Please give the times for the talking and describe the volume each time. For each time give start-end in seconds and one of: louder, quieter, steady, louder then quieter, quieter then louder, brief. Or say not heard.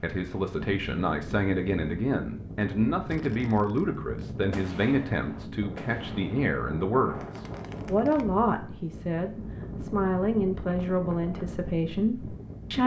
0.0-12.8 steady.